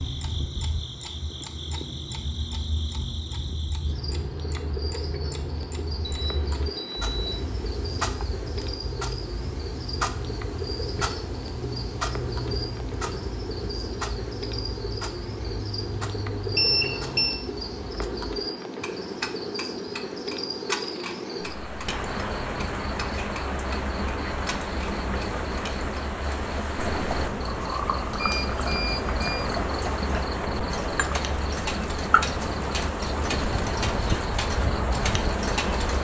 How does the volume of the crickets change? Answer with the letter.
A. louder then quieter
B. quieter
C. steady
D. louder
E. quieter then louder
D.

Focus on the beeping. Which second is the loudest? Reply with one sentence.
The volume of the beeping peaks at 17 seconds.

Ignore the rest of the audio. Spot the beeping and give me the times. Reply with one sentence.
The beeping can be heard from 6.0 to 7.5 s, from 16.6 to 17.4 s and from 28.1 to 29.4 s.